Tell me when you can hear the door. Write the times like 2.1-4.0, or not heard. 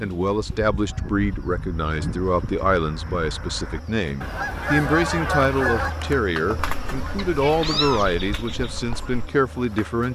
not heard.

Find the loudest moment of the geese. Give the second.
5 s.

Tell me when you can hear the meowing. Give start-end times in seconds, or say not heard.
7.2-8.2.